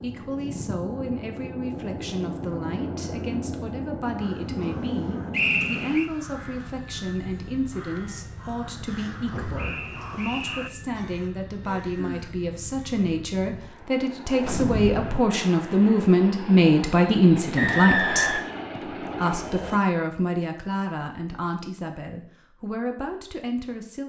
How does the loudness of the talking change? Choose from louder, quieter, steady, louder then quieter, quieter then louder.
louder then quieter.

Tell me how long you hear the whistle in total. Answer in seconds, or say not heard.
3 s.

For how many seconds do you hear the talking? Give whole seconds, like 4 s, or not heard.
24 s.